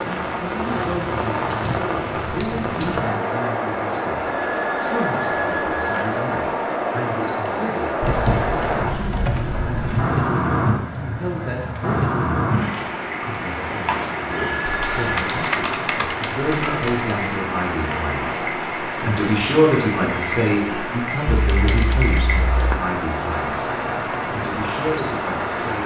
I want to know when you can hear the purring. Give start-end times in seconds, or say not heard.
not heard.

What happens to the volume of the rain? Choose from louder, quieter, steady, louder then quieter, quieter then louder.
steady.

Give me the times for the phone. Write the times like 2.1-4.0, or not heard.
4.2-6.2, 14.3-15.2.